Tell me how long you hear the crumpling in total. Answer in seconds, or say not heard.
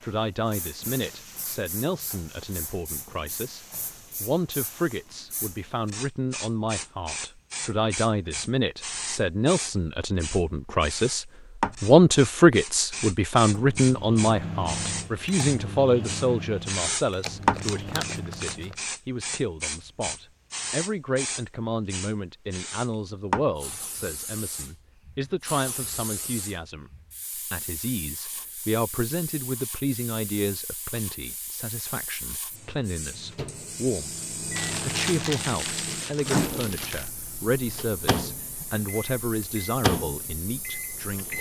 4 s.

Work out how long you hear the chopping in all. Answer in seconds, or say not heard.
not heard.